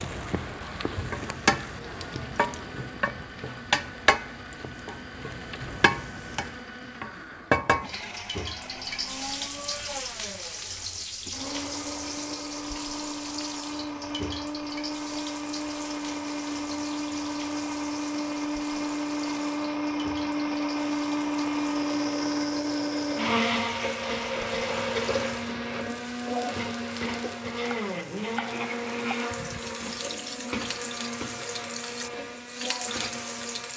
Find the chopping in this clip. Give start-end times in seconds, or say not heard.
not heard.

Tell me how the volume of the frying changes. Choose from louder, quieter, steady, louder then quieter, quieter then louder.
quieter then louder.